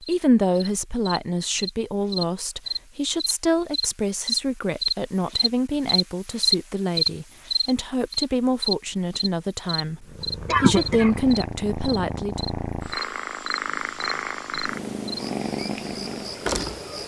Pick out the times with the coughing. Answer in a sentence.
You can hear the coughing from 10.2 to 11.2 s.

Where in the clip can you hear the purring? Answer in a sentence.
The purring can be heard from 9.9 to 17.0 s.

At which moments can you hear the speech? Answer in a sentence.
You can hear the speech from 0.1 to 12.4 s.